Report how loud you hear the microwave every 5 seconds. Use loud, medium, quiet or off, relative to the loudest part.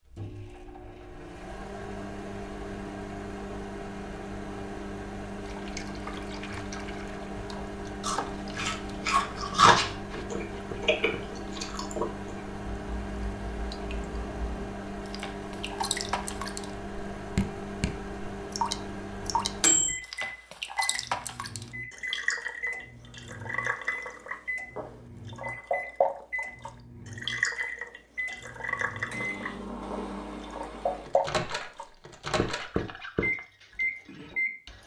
medium, medium, medium, loud, medium, medium, loud.